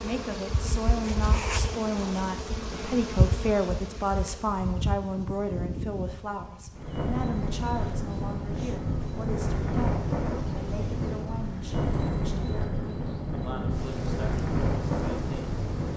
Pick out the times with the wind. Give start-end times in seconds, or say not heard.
6.7-15.9.